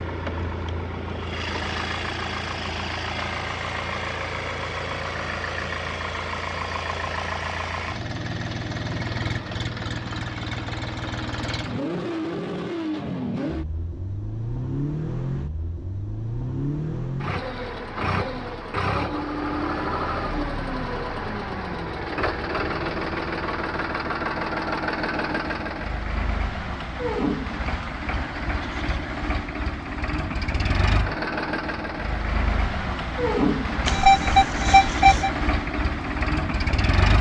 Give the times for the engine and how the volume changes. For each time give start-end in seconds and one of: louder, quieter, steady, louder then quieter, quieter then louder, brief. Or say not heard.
0.0-37.1 steady.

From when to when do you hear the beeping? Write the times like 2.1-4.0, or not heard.
33.9-35.3.